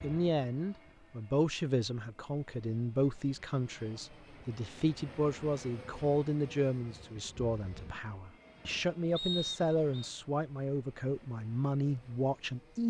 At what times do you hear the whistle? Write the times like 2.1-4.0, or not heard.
9.2-10.1.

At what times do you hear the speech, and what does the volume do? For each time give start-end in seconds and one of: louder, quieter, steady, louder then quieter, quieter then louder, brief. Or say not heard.
0.0-12.8 steady.